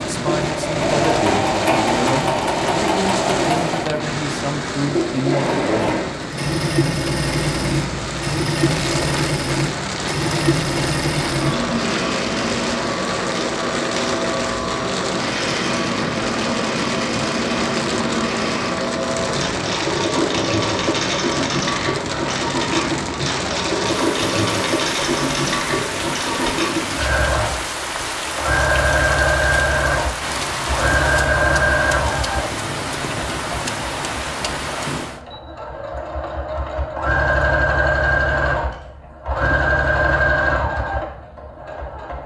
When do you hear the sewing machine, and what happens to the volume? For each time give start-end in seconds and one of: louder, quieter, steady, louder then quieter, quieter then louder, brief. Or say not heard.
0.0-42.2 steady.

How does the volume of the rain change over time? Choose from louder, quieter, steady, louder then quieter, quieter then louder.
steady.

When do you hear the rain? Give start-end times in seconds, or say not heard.
0.0-35.2.